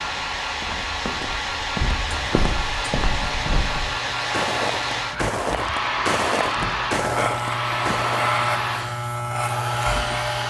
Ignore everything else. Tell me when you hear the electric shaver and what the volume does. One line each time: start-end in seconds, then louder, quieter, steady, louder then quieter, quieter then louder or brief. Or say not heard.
2.0-10.4 louder.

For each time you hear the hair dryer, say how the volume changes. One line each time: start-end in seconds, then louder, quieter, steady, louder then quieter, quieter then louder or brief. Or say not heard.
0.0-10.4 steady.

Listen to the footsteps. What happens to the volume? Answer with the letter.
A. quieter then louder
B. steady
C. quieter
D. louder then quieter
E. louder
E.